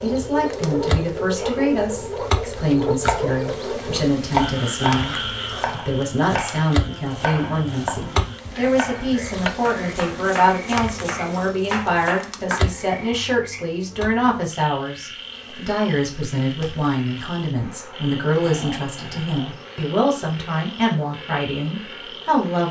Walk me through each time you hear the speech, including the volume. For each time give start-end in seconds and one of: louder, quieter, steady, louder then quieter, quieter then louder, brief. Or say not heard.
0.0-22.6 steady.